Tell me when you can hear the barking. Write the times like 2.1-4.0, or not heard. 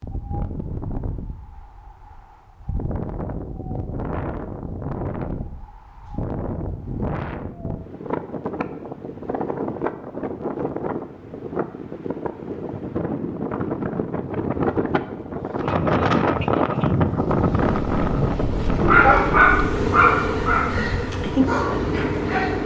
18.8-22.6.